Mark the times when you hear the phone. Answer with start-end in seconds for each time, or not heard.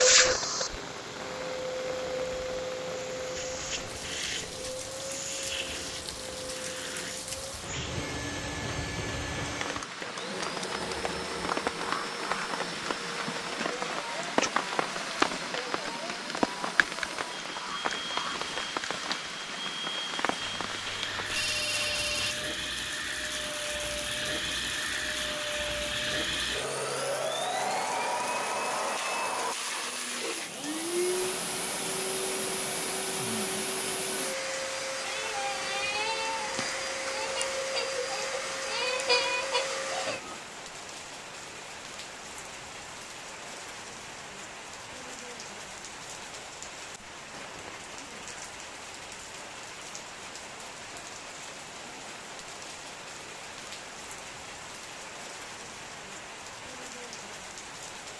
20.4-22.4.